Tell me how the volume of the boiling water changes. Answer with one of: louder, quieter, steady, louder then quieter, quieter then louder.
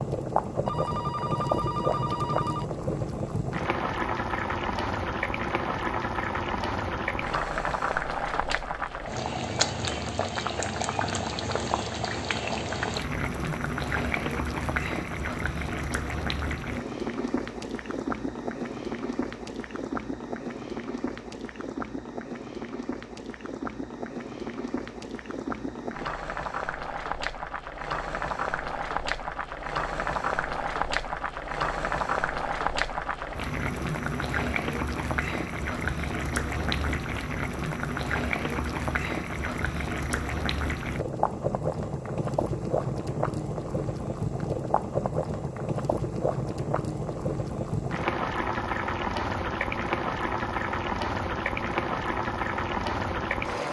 steady.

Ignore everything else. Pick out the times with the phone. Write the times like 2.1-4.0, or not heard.
0.7-2.6.